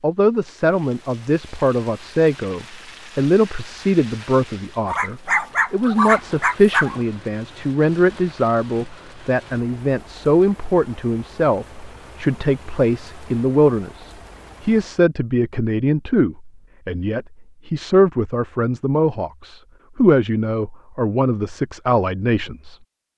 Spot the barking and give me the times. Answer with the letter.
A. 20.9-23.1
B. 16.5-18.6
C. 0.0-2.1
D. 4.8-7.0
D.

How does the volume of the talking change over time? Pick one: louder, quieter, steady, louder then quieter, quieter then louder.
steady.